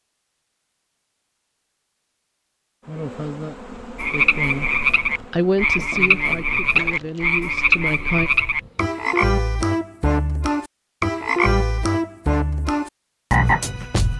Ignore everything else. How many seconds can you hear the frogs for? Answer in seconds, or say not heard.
10 s.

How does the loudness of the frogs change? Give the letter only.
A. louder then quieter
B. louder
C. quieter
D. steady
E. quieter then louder
D.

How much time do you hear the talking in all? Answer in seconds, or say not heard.
3 s.